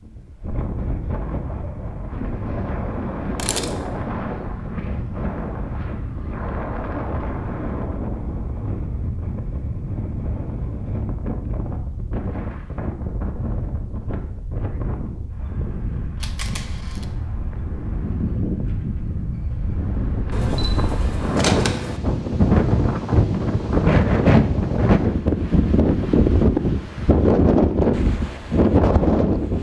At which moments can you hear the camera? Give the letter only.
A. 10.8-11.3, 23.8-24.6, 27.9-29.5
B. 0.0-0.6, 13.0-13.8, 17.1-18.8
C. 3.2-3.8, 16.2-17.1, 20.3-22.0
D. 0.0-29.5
C.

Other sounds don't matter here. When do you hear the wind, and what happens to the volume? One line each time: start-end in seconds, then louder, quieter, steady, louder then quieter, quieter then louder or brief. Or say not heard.
0.0-29.5 louder.